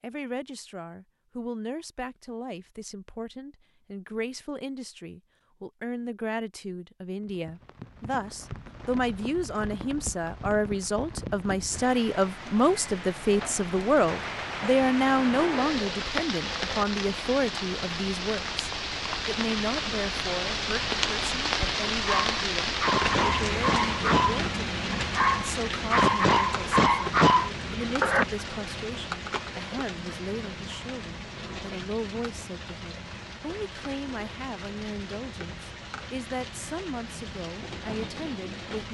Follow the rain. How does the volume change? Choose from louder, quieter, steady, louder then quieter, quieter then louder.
louder then quieter.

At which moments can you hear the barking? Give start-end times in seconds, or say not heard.
22.0-28.2.